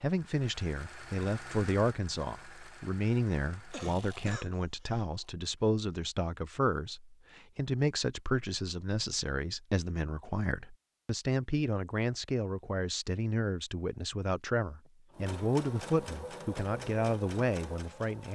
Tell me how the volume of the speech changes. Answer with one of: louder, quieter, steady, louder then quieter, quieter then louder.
steady.